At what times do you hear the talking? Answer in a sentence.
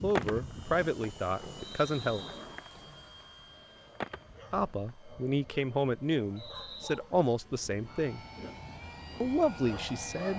You can hear the talking from 0.0 to 2.2 s, from 4.5 to 8.2 s and from 9.2 to 10.3 s.